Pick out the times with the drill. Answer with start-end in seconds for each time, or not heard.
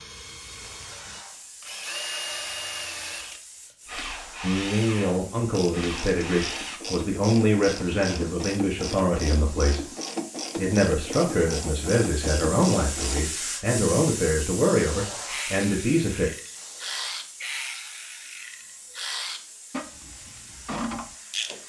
0.0-6.8.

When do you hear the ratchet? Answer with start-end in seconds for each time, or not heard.
5.3-13.2, 15.2-21.6.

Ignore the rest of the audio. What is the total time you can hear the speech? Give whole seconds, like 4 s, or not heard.
11 s.